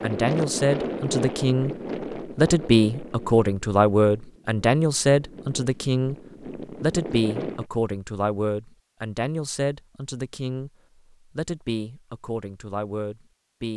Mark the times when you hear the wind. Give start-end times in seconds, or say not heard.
0.0-7.7.